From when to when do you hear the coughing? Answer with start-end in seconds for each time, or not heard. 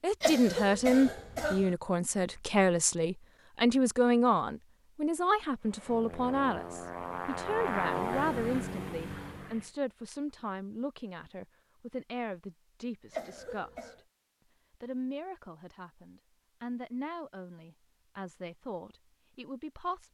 0.2-1.7, 13.1-14.0.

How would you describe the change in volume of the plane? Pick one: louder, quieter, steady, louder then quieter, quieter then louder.
louder then quieter.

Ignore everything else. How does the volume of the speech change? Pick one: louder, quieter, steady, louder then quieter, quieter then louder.
quieter.